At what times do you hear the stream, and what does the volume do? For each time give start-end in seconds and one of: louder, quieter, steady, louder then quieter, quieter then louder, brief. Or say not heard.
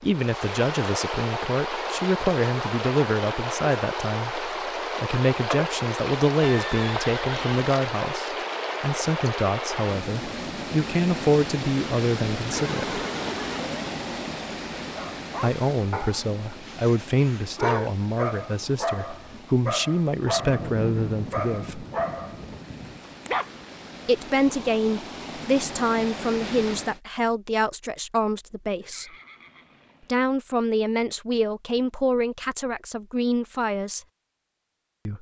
0.0-27.0 quieter then louder.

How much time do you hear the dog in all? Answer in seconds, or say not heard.
9 s.